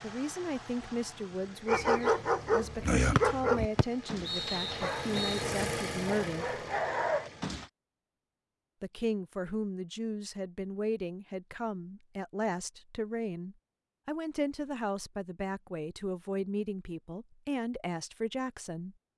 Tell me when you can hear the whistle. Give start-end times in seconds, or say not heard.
3.1-5.5.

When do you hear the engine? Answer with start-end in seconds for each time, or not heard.
0.0-7.5.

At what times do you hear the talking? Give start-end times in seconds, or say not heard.
0.0-6.6, 8.8-18.9.